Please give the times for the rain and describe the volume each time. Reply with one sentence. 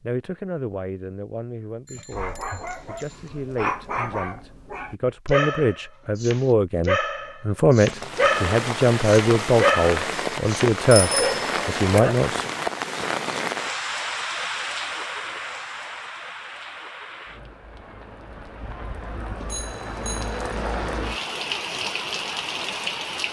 The rain can be heard from 7.8 to 23.2 s, getting quieter then louder.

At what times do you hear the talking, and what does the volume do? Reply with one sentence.
The talking can be heard from 0.0 to 12.5 s, getting louder.